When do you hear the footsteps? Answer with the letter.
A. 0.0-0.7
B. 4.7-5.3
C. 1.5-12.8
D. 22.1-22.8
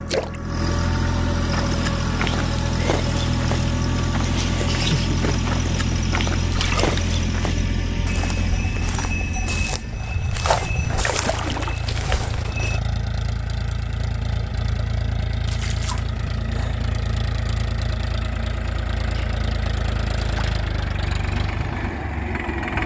C.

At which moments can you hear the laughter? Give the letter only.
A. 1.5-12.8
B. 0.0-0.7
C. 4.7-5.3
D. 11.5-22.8
C.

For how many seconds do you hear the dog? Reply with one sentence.
The dog can't be heard in this clip.